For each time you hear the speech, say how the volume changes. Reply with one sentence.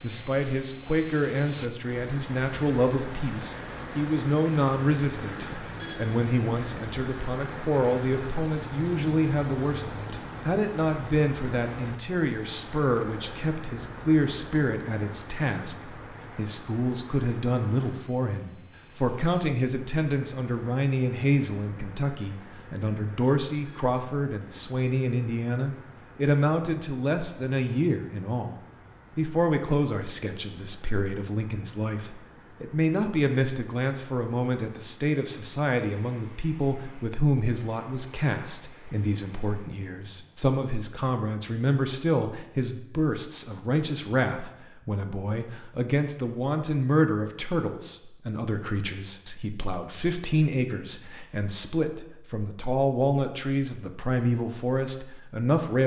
The speech can be heard from 0.0 to 55.8 s, at a steady volume.